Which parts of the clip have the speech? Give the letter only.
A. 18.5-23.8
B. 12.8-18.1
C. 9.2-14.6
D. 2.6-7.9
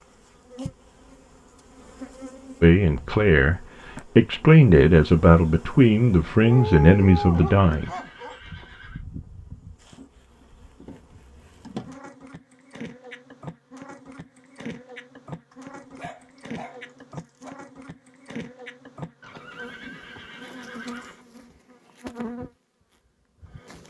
D.